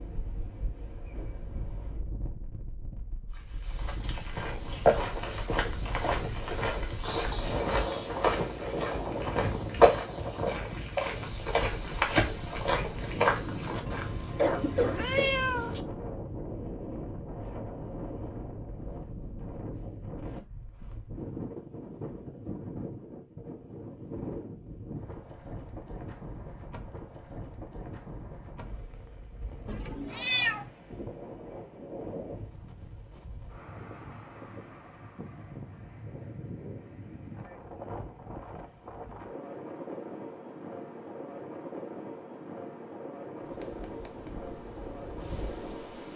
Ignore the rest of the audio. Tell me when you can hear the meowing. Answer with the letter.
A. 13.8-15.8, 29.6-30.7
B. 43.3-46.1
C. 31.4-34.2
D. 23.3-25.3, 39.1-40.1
A.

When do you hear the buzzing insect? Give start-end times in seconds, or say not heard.
43.3-46.1.